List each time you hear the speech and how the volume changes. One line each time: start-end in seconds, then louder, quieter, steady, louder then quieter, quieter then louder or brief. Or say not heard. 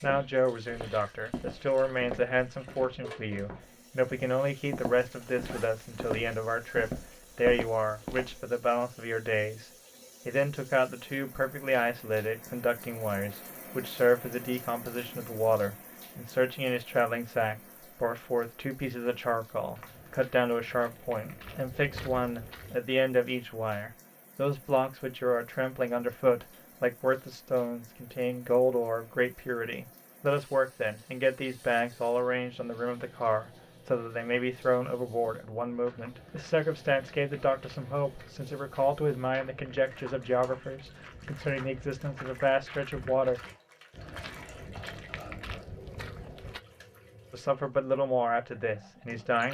0.0-43.4 steady
47.3-49.5 brief.